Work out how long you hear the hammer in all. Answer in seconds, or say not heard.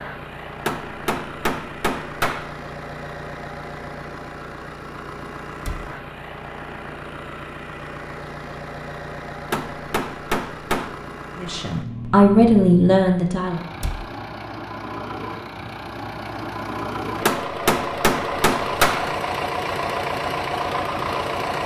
5 s.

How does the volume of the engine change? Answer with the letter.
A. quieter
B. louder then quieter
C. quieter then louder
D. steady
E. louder
E.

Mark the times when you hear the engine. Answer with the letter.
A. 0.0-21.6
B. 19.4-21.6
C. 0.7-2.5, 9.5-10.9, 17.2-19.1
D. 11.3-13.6
A.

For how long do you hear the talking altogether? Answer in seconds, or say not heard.
2 s.